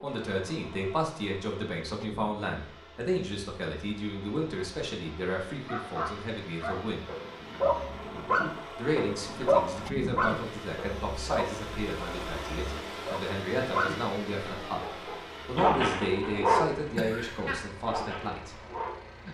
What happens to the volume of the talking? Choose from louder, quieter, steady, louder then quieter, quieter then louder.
steady.